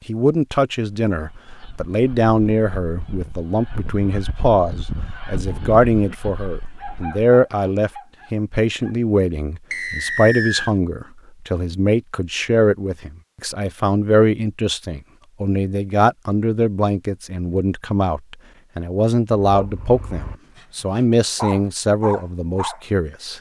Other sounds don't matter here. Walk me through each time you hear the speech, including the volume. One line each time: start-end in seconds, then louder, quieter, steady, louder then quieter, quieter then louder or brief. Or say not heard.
0.1-23.3 steady.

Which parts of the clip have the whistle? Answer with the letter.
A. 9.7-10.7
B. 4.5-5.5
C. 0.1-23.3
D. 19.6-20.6
A.